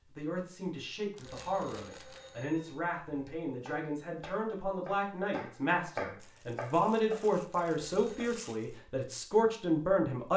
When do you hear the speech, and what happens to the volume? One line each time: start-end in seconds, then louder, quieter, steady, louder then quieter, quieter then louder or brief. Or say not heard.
0.1-10.3 louder.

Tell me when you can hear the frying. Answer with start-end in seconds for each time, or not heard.
not heard.